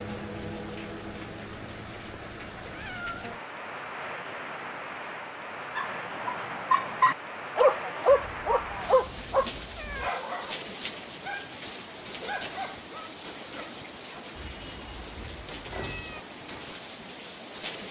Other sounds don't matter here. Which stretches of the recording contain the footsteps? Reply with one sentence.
The footsteps can't be heard in this clip.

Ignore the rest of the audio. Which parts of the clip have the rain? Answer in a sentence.
You can hear the rain from 0.0 to 17.8 s.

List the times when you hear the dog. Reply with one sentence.
You can hear the dog from 5.8 to 14.2 s.